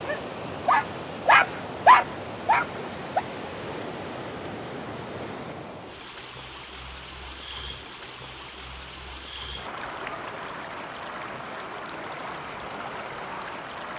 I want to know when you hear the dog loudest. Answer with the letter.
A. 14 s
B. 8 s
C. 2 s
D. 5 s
C.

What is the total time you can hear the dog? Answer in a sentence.
You can hear the dog for 3 seconds altogether.